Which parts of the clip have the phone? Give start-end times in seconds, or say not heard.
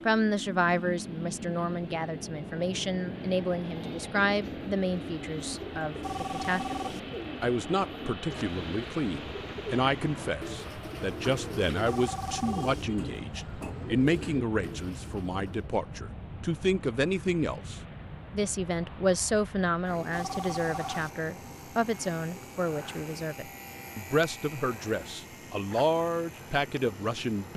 6.0-7.0, 11.8-12.8, 20.1-21.1.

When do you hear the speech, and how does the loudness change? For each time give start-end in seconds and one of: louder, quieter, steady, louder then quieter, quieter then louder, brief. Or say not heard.
0.1-27.5 steady.